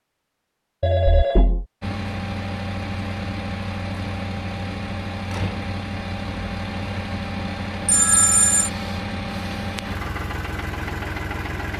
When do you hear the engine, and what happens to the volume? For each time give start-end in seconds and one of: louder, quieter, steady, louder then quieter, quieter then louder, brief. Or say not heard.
1.8-11.7 steady.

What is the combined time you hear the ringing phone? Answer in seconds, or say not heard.
2 s.